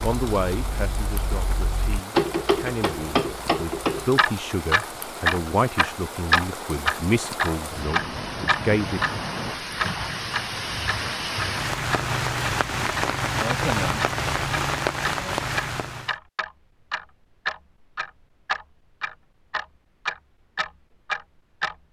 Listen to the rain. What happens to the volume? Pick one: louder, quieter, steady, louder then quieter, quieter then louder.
louder.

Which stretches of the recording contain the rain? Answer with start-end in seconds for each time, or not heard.
0.0-16.1.